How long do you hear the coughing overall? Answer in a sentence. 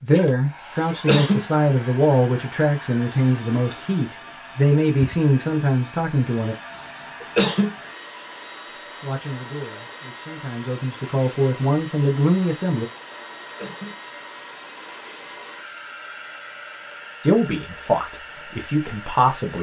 You can hear the coughing for 2 seconds altogether.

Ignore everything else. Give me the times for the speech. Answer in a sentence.
The speech can be heard from 0.0 to 6.5 s, from 9.0 to 12.8 s and from 17.2 to 19.5 s.